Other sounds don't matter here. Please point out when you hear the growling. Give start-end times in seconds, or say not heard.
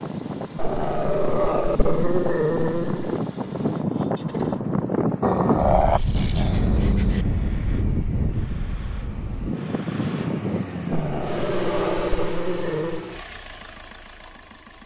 0.6-3.2, 5.2-7.2, 10.9-13.1.